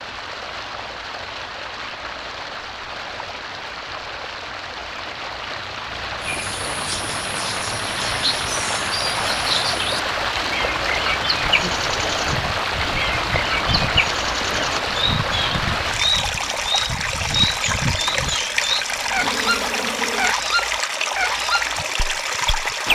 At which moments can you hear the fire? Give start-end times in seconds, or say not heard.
not heard.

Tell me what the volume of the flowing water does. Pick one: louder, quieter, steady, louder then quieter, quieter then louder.
louder.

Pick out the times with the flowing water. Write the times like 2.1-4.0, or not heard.
0.0-22.9.